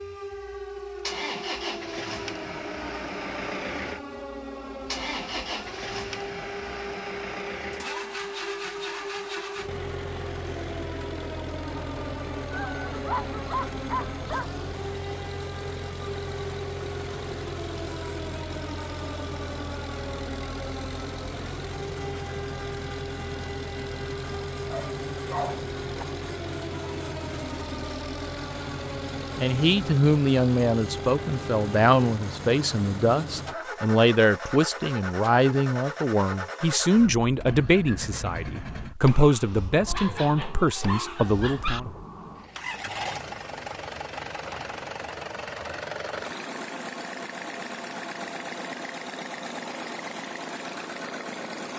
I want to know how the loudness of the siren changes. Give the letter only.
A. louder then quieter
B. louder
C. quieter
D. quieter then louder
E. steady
E.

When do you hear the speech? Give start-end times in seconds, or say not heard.
29.4-41.9.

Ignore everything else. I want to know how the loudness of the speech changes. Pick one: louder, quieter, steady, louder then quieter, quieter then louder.
steady.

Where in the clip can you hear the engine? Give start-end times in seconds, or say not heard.
0.0-51.7.